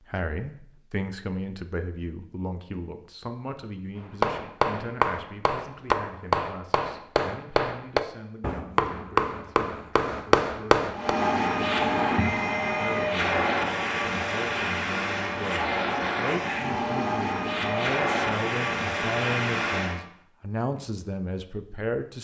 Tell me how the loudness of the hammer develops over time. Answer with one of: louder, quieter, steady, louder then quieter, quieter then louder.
steady.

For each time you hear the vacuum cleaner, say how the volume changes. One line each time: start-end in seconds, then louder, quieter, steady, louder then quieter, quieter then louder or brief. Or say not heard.
10.9-20.1 steady.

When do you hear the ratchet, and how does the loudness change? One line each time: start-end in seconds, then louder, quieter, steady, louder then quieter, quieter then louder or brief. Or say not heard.
not heard.